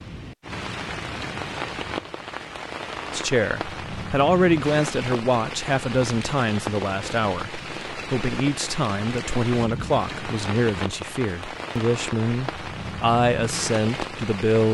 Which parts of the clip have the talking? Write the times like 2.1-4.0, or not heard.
3.1-14.6.